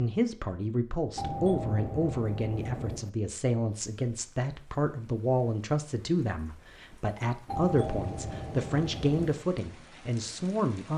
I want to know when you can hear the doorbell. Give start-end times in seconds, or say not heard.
1.1-3.1, 7.5-9.4.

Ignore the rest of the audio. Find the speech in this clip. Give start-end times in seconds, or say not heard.
0.0-10.9.